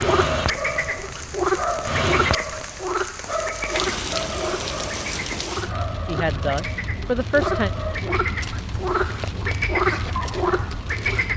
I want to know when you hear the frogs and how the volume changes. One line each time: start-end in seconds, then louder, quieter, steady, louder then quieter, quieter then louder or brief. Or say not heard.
0.0-11.3 quieter then louder.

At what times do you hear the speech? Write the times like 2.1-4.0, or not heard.
6.0-7.7.